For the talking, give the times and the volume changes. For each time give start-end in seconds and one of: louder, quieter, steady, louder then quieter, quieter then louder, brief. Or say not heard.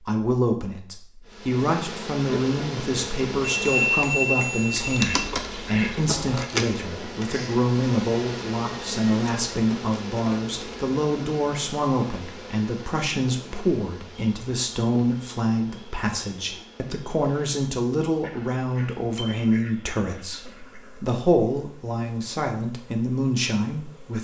0.0-24.1 steady.